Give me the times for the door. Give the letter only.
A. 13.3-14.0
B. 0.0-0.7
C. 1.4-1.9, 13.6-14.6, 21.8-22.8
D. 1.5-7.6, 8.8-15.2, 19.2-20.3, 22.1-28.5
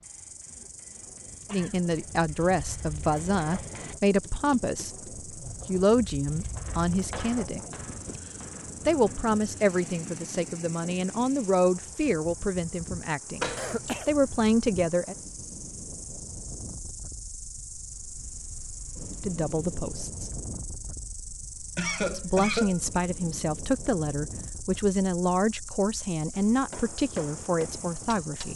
A.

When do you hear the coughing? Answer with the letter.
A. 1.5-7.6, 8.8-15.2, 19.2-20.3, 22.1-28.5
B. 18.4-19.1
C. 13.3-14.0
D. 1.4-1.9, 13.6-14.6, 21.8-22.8
D.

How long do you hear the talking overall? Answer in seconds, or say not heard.
20 s.